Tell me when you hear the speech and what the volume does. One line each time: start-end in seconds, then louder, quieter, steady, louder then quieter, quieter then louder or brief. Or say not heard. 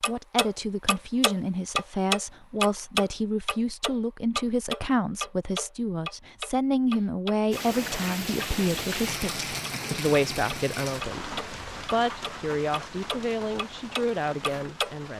0.1-15.1 steady.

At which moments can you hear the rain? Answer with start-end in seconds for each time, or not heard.
7.5-15.1.